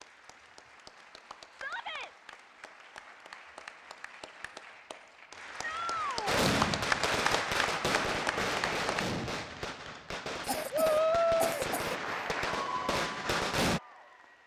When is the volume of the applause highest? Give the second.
7 s.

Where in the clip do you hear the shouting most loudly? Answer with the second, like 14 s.
11 s.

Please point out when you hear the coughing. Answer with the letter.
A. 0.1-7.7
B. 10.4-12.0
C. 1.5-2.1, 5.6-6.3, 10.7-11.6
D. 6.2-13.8
B.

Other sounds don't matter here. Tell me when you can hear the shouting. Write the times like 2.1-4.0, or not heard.
1.5-2.1, 5.6-6.3, 10.7-11.6.